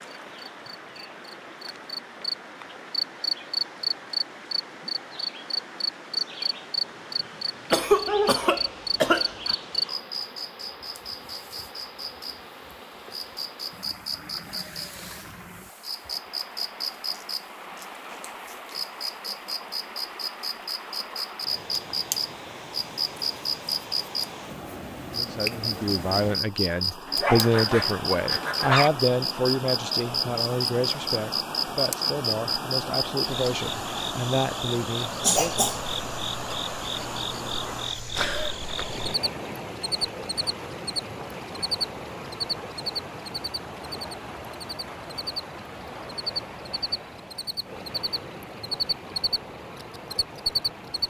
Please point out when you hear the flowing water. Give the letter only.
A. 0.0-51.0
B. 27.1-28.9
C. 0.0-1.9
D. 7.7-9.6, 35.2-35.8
A.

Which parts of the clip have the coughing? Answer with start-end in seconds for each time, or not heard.
7.7-9.6, 35.2-35.8.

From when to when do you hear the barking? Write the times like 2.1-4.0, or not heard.
27.1-28.9.